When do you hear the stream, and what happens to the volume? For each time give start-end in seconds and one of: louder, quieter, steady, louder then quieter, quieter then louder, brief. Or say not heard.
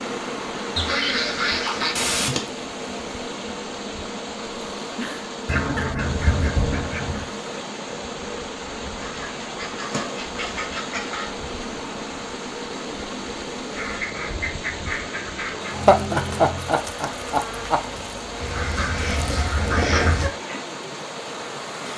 0.0-21.9 steady.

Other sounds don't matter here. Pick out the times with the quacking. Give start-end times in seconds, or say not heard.
0.8-2.4, 5.5-7.3, 8.9-11.3, 13.8-15.8, 18.4-20.3.